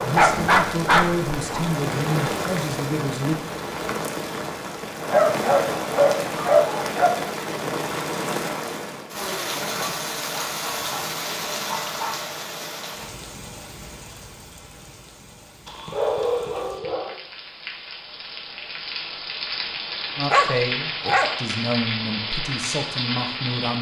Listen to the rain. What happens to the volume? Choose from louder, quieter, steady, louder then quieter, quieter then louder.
quieter then louder.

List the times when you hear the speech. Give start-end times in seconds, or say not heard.
0.0-3.4, 20.1-23.7.